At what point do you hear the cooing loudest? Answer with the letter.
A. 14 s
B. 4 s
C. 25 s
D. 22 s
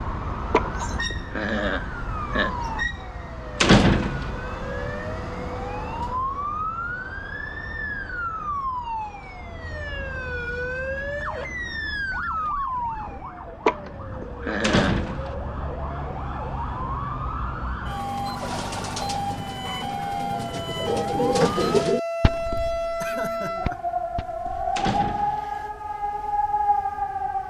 D.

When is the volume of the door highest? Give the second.
4 s.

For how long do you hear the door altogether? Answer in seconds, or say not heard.
2 s.